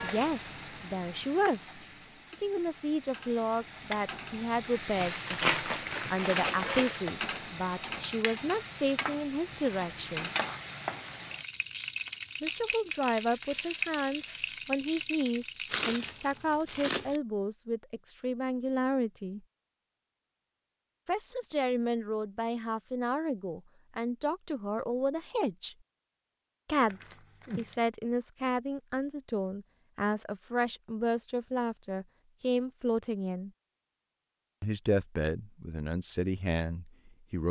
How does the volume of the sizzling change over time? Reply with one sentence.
The volume of the sizzling goes up.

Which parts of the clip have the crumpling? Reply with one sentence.
The crumpling can be heard from 5.0 to 7.0 s, from 15.7 to 17.2 s and from 26.9 to 27.9 s.